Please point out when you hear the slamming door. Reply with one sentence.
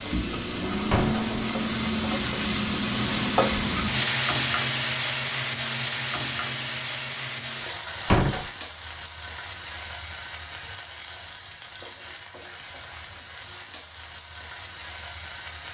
The slamming door can be heard from 0.9 to 1.3 s and from 8.1 to 8.5 s.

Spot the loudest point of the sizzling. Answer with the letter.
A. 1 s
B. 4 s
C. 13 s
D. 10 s
B.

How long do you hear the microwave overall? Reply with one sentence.
The microwave can be heard for 4 seconds in total.